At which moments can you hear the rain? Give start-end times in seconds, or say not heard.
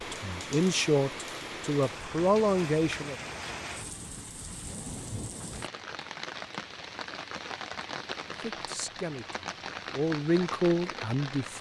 0.0-11.5.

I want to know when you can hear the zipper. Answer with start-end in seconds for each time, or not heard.
not heard.